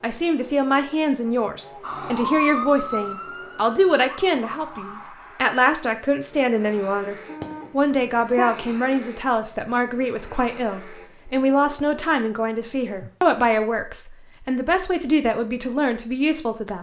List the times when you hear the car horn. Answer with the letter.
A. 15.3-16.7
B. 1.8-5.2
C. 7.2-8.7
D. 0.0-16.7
C.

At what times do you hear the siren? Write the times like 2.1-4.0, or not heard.
1.8-5.2.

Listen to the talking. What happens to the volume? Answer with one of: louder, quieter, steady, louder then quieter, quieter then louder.
steady.